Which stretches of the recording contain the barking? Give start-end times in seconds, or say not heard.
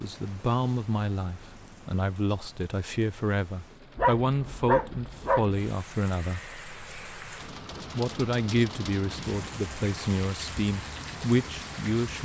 4.0-5.6.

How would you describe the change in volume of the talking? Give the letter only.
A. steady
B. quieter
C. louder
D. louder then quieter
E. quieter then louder
A.